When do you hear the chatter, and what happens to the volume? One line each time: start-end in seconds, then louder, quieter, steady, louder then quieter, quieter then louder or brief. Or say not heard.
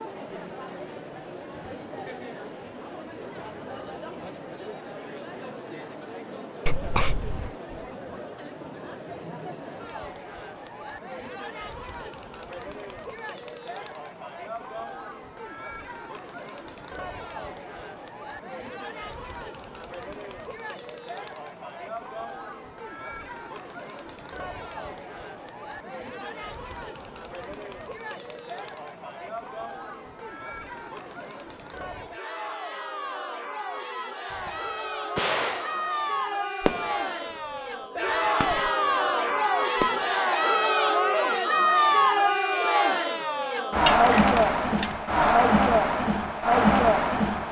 0.0-47.4 louder.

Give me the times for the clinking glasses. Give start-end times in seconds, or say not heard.
43.8-45.0.